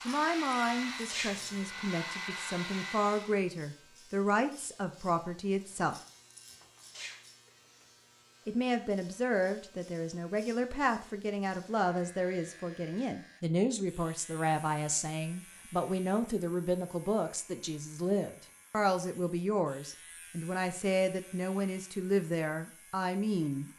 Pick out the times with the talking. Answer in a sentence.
You can hear the talking from 0.1 to 6.0 s and from 8.4 to 23.7 s.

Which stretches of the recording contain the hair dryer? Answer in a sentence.
The hair dryer can be heard from 0.0 to 3.4 s.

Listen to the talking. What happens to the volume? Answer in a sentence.
The loudness of the talking stays about the same.